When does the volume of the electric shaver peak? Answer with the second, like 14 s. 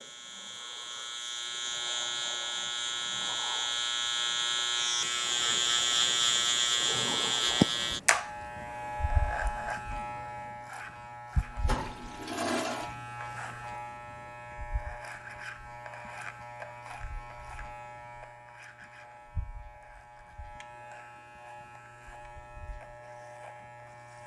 7 s.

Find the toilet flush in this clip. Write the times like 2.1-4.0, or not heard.
11.4-12.9.